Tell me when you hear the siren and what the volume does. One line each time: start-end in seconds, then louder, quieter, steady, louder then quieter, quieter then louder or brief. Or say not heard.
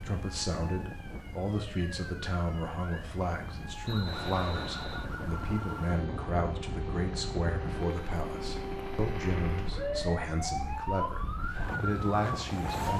0.0-12.9 louder.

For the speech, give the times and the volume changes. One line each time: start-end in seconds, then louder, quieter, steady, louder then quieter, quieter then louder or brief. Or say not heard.
0.0-12.9 steady.